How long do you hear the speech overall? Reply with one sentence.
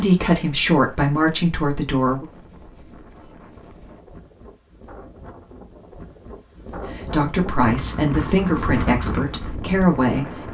You can hear the speech for 6 seconds altogether.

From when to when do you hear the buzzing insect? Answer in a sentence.
You can't hear the buzzing insect here.